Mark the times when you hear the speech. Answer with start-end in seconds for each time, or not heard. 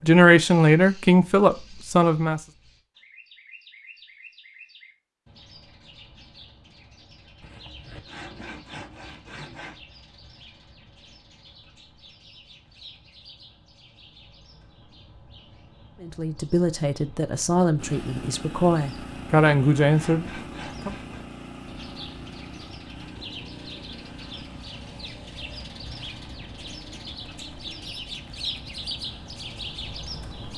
0.0-2.4, 16.0-20.9.